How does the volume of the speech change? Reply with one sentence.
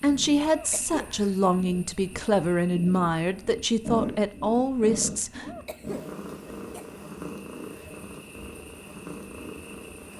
The volume of the speech stays about the same.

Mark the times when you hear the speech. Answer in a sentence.
You can hear the speech from 0.0 to 5.5 s.